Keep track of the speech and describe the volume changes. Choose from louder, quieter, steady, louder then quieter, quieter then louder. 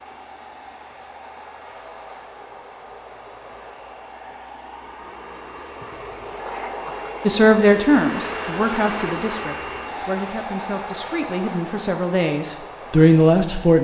quieter then louder.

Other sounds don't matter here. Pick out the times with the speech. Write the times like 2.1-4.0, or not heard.
7.2-13.7.